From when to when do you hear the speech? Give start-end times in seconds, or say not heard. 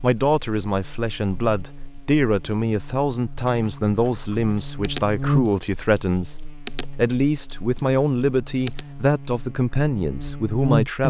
0.0-11.0.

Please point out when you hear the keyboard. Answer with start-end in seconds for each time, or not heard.
3.5-8.8.